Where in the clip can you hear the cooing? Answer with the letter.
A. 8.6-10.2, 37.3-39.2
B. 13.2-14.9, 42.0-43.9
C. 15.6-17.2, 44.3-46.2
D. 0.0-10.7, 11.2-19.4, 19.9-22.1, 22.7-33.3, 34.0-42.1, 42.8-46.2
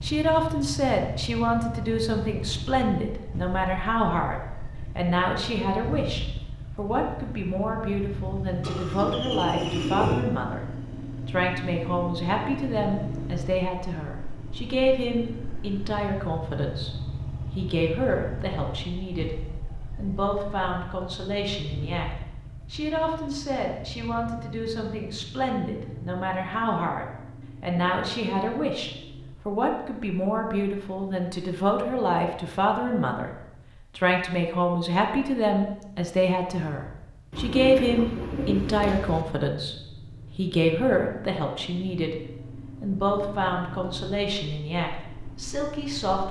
A.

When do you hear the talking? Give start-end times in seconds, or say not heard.
0.0-10.7, 11.2-19.4, 19.9-22.1, 22.7-33.3, 34.0-42.1, 42.8-46.2.